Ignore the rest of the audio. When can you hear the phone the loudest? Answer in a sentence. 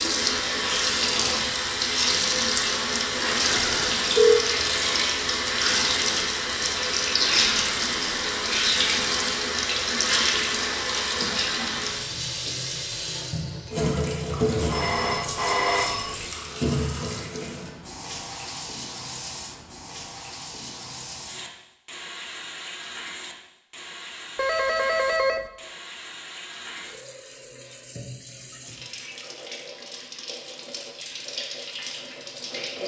The volume of the phone peaks at 4 seconds.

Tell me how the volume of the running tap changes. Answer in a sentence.
The loudness of the running tap goes down.